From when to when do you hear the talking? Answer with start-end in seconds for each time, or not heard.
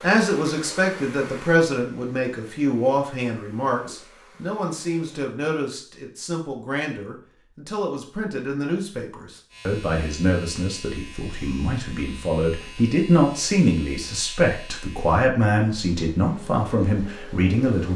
0.0-17.9.